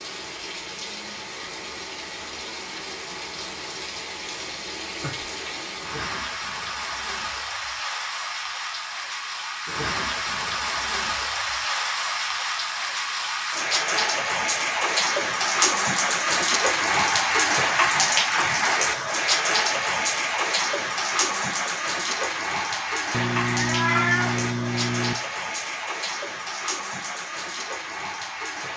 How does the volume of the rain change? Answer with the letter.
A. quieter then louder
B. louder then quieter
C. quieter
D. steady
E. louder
B.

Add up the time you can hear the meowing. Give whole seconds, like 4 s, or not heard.
2 s.